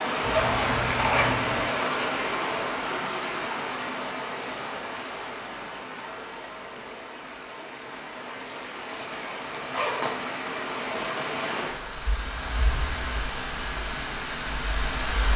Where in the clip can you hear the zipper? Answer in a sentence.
The zipper can be heard from 0.2 to 1.7 s and from 8.9 to 10.1 s.